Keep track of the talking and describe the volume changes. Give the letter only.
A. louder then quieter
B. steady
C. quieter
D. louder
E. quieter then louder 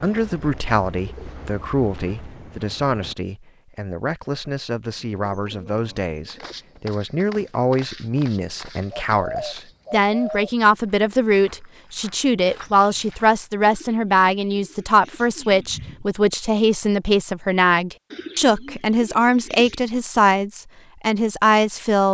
D.